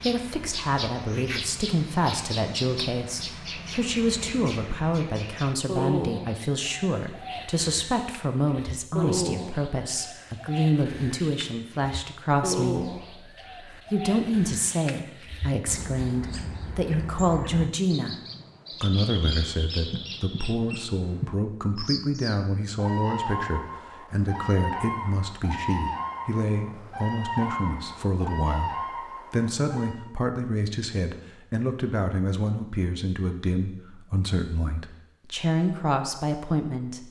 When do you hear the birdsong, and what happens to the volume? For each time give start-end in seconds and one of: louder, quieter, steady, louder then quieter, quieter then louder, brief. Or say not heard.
0.0-30.1 steady.